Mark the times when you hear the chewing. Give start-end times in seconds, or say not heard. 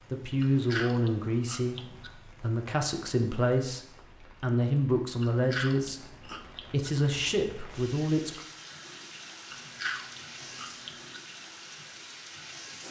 0.4-2.1, 5.2-6.9, 9.5-11.2.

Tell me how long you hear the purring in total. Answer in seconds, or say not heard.
not heard.